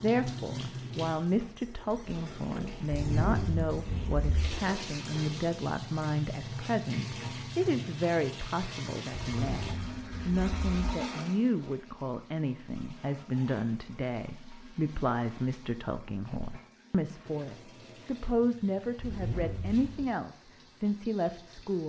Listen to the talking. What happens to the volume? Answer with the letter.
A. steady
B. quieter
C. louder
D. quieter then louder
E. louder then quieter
A.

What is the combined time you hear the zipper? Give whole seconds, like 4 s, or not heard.
4 s.